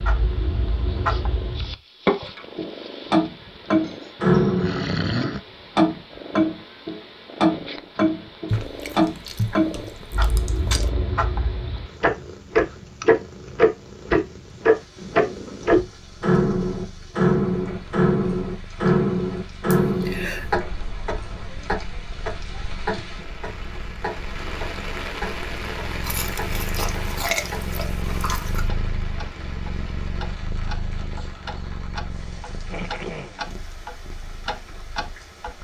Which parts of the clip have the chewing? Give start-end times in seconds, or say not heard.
8.5-10.9, 26.0-28.6.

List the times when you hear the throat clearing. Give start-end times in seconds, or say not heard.
3.8-5.4, 19.7-20.4, 32.6-33.6.